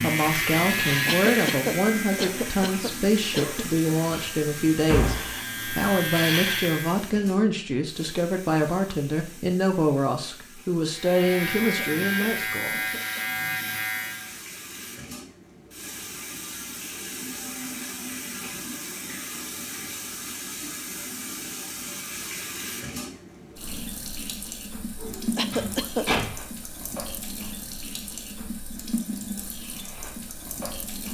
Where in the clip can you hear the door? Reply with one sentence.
The door can be heard from 4.1 to 5.3 s and from 25.0 to 26.3 s.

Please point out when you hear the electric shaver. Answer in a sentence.
You can hear the electric shaver from 0.0 to 7.0 s and from 10.9 to 14.4 s.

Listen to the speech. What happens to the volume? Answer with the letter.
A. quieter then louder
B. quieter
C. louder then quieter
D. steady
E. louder
D.